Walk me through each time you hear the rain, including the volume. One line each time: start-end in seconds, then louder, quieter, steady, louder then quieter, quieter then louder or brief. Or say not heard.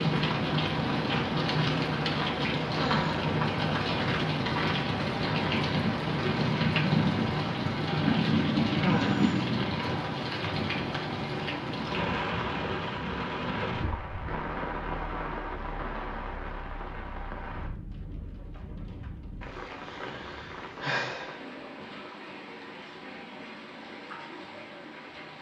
0.0-25.3 quieter.